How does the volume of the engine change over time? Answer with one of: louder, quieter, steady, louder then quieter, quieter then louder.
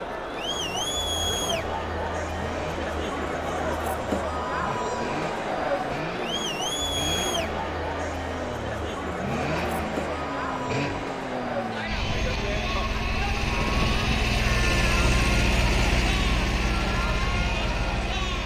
louder.